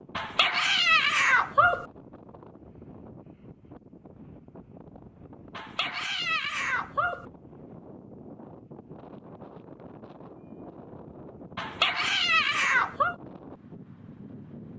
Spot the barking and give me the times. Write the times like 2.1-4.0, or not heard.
0.1-1.9, 5.5-7.2, 11.6-13.2.